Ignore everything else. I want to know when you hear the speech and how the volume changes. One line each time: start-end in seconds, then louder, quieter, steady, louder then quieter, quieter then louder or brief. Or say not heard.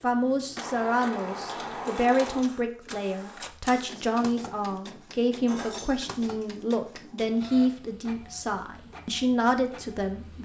0.0-10.4 steady.